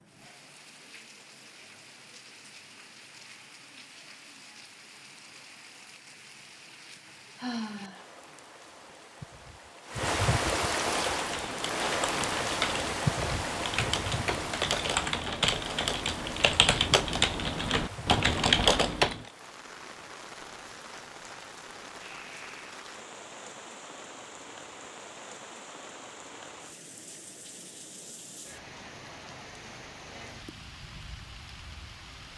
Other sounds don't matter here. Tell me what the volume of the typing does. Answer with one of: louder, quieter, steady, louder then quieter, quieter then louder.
louder.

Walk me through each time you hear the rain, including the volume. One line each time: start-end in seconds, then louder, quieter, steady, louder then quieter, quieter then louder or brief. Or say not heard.
0.0-32.3 louder then quieter.